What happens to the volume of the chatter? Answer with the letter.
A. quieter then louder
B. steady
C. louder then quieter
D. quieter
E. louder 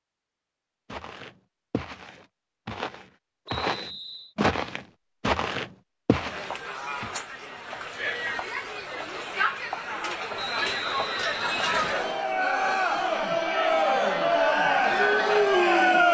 E.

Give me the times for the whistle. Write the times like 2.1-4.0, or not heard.
3.5-4.3, 10.3-12.3.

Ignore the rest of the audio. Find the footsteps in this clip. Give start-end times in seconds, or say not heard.
0.9-7.2.